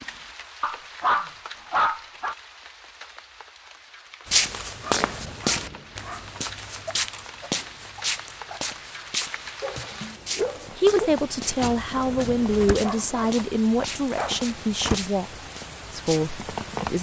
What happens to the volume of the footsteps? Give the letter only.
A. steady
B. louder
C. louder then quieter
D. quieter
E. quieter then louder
D.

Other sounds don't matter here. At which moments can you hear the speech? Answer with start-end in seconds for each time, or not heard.
10.8-15.3, 15.9-16.9.